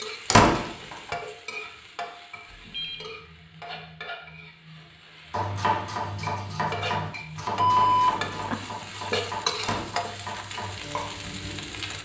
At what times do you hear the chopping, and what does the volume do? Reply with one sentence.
The chopping can be heard from 5.3 to 11.6 s, getting quieter.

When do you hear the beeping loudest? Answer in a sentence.
The loudest moment of the beeping is at 8 seconds.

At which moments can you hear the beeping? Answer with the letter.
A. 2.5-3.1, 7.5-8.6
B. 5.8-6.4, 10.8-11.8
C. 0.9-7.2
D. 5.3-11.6
A.